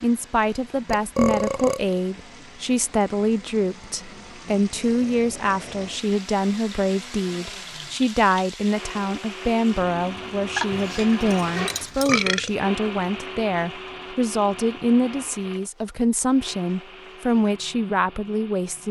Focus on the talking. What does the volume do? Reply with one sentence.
The volume of the talking stays about the same.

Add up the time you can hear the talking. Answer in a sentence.
You can hear the talking for 19 seconds altogether.